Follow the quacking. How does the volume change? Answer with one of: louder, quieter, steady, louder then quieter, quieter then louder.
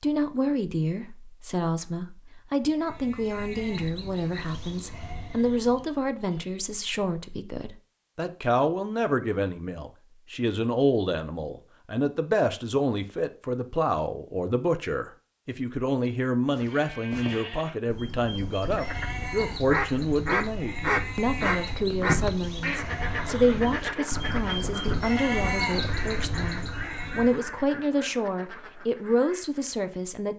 quieter.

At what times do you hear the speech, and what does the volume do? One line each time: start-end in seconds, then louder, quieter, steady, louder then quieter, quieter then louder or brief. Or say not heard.
0.0-30.3 steady.